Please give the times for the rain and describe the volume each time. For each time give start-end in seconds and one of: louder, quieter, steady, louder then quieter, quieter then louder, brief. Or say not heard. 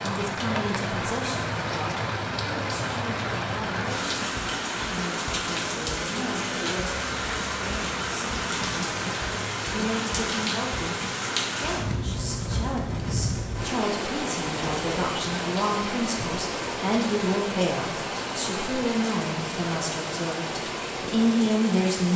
0.0-22.1 steady.